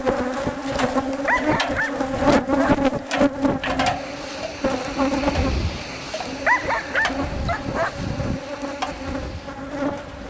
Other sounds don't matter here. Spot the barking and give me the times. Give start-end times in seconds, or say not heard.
1.2-2.9, 6.5-8.4.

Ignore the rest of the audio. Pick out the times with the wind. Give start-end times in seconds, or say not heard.
3.6-10.2.